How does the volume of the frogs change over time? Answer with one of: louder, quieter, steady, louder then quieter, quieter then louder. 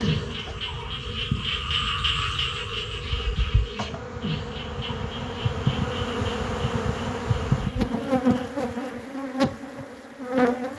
quieter.